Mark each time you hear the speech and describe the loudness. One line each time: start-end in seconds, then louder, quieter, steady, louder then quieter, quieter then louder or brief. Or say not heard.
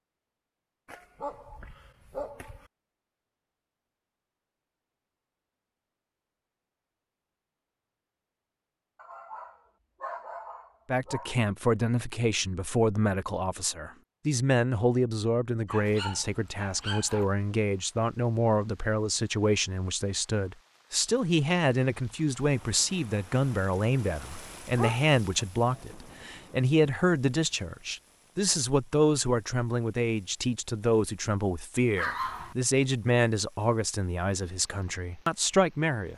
10.8-36.1 steady.